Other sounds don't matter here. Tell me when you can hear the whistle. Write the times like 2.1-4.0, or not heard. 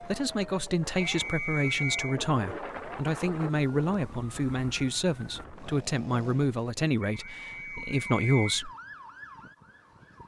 1.1-2.2, 7.0-8.6.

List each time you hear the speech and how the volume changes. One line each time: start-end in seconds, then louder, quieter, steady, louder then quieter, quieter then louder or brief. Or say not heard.
0.0-8.7 steady.